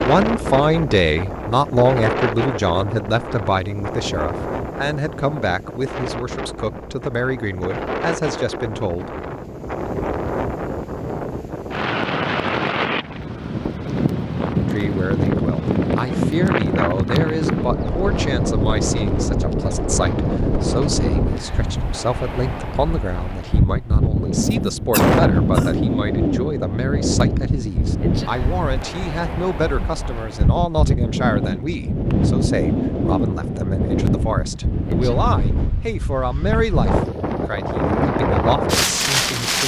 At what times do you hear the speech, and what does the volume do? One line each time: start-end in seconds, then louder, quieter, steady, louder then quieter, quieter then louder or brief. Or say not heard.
0.0-9.2 quieter
14.7-39.6 steady.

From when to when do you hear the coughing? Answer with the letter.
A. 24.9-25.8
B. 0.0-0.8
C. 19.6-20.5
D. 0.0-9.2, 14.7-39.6
A.